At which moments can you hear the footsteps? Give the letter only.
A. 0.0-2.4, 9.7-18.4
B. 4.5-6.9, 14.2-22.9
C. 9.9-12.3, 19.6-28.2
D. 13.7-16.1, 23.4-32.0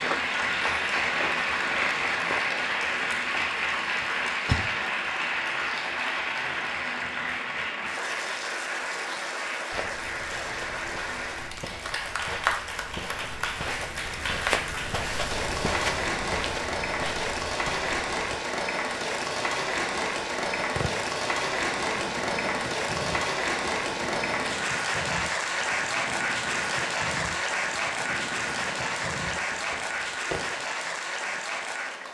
A.